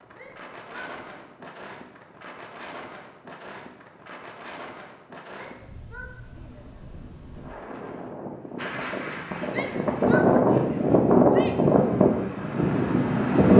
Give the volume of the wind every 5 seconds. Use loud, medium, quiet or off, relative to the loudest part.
quiet, quiet, loud.